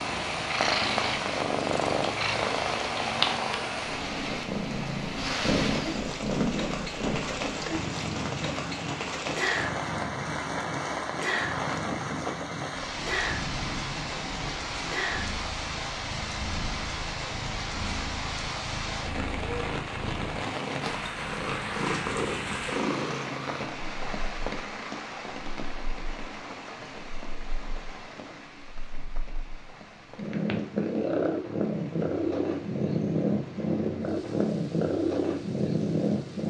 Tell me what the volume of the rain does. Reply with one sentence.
The volume of the rain goes down.